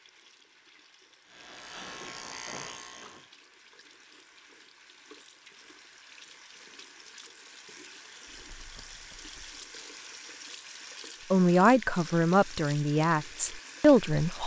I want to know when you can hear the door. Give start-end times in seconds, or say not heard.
not heard.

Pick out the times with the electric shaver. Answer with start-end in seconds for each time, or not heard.
1.2-3.3.